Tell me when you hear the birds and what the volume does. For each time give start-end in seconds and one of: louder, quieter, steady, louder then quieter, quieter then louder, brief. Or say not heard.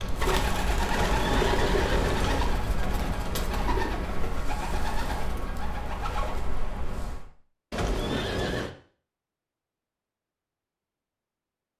0.0-7.3 quieter.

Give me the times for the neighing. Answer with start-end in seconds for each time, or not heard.
0.9-2.5, 7.7-8.7.